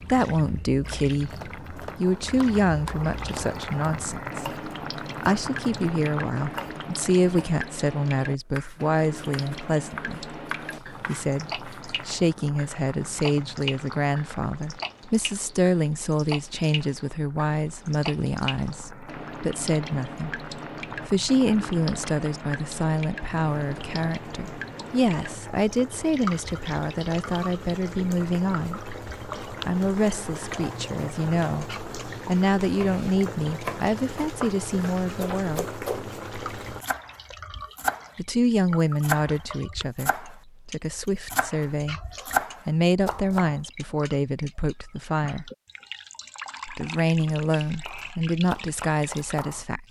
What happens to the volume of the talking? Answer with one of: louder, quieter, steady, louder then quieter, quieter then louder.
steady.